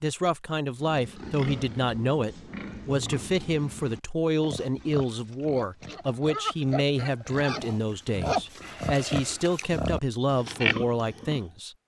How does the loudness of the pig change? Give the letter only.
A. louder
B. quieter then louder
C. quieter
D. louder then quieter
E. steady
A.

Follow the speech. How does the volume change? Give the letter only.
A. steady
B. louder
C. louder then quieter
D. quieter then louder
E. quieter
A.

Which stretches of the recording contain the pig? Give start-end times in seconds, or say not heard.
0.8-11.4.